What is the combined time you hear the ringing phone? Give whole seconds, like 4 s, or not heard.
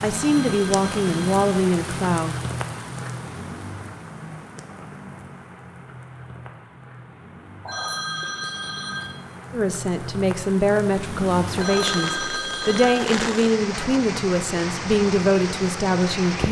4 s.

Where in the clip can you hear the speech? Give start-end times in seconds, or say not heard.
0.0-2.4, 9.5-16.4.